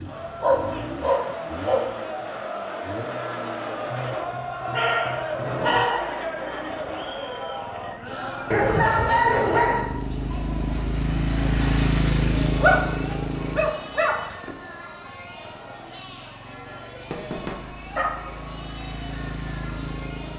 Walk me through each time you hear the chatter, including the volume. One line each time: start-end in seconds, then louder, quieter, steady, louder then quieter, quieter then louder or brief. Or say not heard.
0.0-20.3 quieter.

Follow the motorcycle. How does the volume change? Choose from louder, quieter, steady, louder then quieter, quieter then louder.
louder then quieter.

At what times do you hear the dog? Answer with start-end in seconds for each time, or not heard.
0.4-1.9, 4.7-6.2, 8.5-9.8, 12.6-14.6, 17.1-18.1.